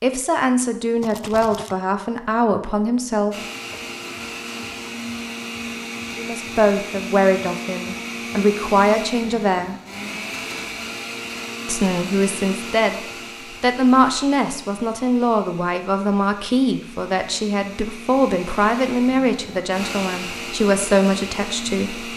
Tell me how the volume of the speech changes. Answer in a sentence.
The loudness of the speech stays about the same.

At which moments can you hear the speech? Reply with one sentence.
The speech can be heard from 0.0 to 3.8 s, from 6.2 to 9.8 s and from 11.7 to 22.1 s.